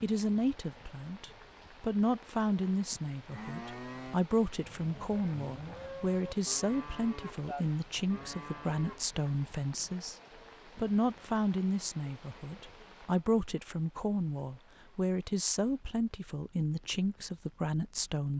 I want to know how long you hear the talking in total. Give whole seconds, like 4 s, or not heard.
18 s.